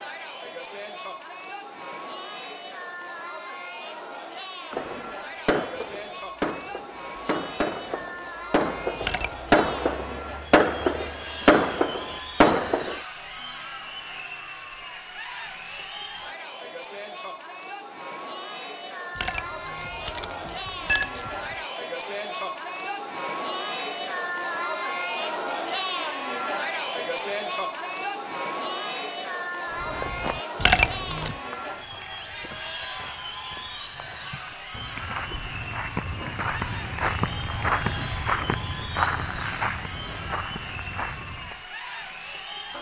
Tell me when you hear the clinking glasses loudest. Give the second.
31 s.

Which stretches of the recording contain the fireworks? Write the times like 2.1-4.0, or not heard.
4.7-13.0.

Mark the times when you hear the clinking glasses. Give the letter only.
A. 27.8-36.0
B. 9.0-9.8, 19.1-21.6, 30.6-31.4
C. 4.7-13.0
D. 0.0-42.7
B.